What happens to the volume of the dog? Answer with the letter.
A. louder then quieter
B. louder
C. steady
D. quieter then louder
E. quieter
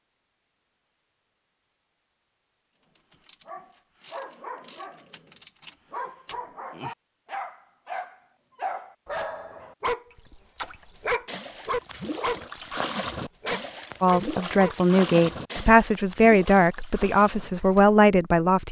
B.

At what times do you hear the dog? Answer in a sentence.
The dog can be heard from 3.0 to 14.8 s.